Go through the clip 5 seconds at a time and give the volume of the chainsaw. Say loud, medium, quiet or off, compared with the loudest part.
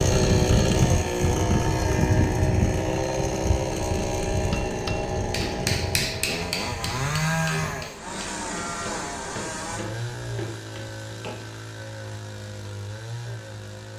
loud, medium, quiet.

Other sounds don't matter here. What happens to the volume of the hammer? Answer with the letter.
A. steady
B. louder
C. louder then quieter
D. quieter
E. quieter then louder
D.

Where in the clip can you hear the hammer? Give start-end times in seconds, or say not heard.
4.3-11.3.